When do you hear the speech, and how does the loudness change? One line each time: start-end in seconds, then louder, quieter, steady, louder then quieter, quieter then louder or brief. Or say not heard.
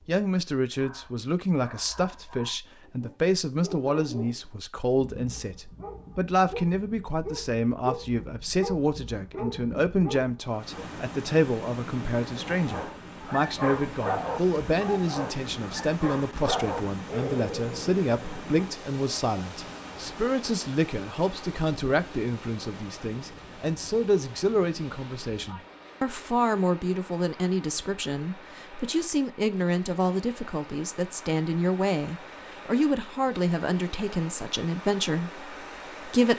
0.1-36.3 steady.